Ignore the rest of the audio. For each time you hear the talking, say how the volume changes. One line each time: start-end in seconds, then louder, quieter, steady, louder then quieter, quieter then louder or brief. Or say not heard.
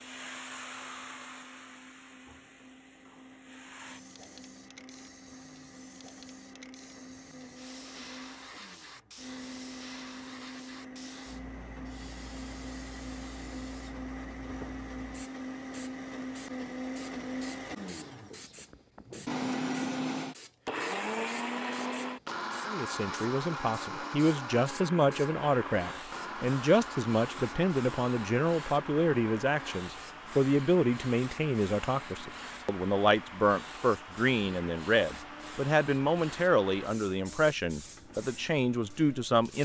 22.6-39.5 steady.